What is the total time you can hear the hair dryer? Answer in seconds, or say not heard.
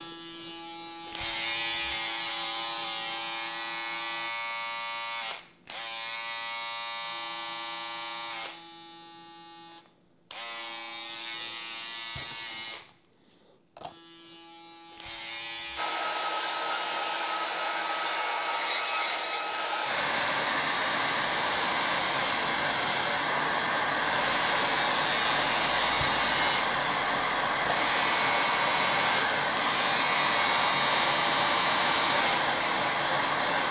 18 s.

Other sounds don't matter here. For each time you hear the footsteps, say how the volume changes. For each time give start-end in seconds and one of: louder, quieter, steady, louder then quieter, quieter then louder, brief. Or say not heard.
not heard.